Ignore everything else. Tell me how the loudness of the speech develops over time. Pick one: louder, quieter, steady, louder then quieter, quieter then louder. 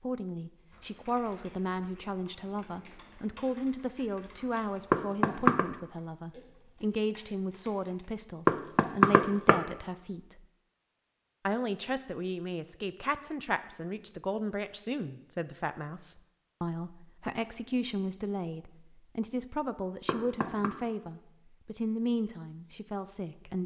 steady.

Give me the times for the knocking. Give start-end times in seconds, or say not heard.
4.9-5.7, 8.4-9.6, 20.1-20.7.